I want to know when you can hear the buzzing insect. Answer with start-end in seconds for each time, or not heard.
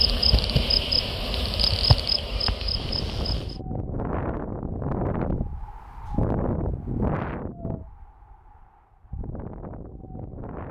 0.0-3.6.